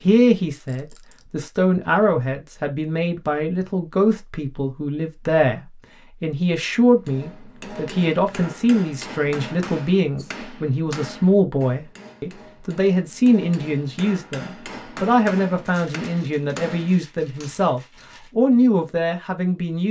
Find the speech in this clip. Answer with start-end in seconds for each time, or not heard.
0.0-19.8.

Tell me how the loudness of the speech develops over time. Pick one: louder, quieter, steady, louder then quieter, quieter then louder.
steady.